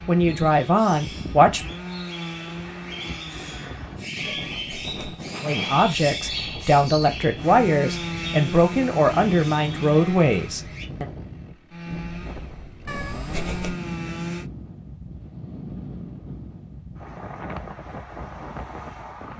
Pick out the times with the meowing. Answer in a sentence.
You can hear the meowing from 4.2 to 5.3 s and from 12.8 to 13.8 s.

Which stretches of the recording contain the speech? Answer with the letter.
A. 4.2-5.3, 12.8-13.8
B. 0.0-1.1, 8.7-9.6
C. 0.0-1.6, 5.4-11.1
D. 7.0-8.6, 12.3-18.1
C.